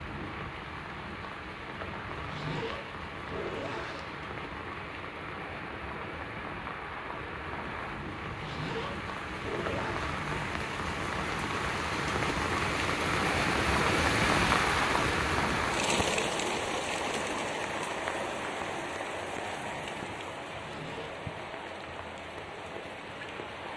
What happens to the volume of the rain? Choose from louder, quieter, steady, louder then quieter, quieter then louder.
louder then quieter.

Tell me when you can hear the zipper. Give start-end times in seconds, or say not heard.
2.0-4.1, 8.2-10.2, 20.5-21.1.